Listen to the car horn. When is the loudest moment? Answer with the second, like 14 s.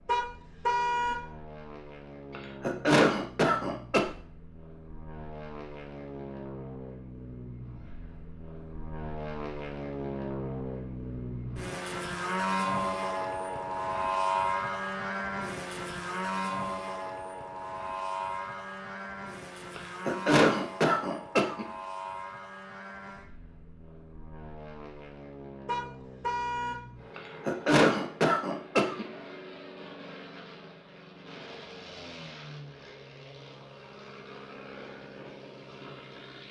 1 s.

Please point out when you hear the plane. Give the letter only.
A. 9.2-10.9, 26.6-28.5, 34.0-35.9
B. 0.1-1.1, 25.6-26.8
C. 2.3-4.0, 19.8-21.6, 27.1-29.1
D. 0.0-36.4
D.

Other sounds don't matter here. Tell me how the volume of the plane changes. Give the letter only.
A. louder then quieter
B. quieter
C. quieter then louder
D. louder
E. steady
A.